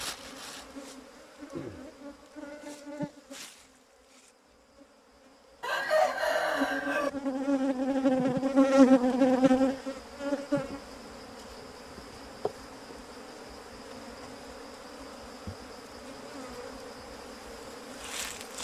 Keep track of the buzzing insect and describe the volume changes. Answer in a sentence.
The volume of the buzzing insect goes up, then down.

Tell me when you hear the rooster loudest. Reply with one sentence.
The loudest moment of the rooster is at 6 seconds.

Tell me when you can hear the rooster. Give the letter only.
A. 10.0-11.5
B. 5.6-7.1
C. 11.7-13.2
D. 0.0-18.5
B.